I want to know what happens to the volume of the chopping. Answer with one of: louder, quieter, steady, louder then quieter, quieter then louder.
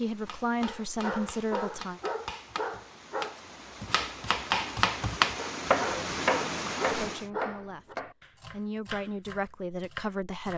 louder then quieter.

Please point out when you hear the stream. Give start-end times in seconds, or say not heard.
0.0-7.3.